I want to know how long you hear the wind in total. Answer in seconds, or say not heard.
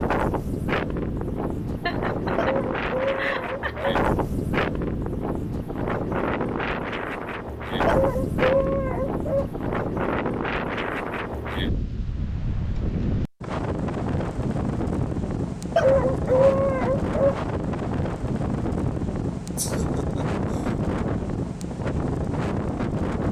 23 s.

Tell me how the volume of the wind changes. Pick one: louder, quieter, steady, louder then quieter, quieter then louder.
steady.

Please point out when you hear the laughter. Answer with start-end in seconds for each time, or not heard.
1.9-4.1, 19.6-20.8.